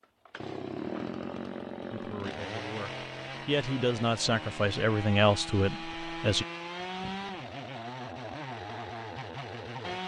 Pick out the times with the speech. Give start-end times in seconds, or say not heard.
1.9-6.5.